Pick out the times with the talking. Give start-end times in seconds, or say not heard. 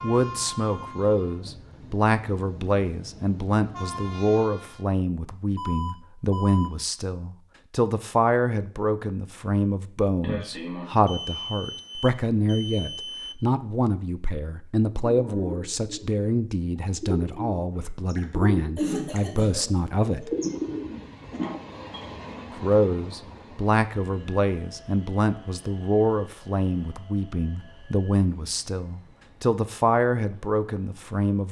0.0-20.3, 22.5-31.4.